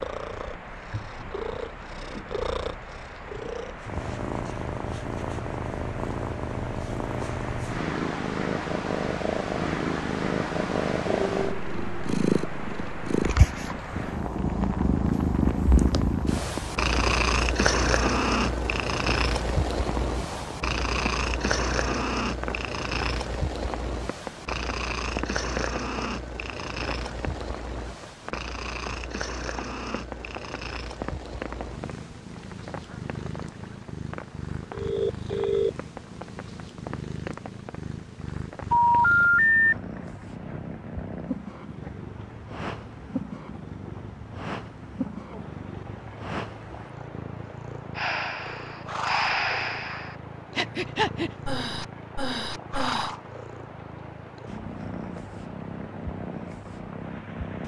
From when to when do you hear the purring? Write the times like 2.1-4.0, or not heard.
0.0-57.6.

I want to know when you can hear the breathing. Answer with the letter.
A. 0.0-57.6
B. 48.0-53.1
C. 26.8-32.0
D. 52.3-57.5
B.